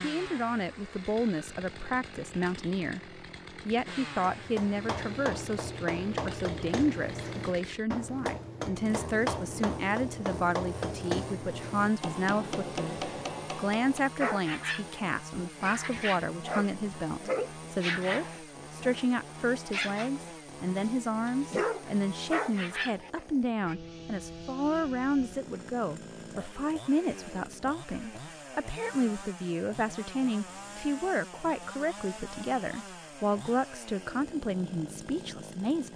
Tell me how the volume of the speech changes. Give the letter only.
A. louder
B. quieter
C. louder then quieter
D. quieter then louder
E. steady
E.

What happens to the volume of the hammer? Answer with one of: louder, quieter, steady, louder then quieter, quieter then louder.
steady.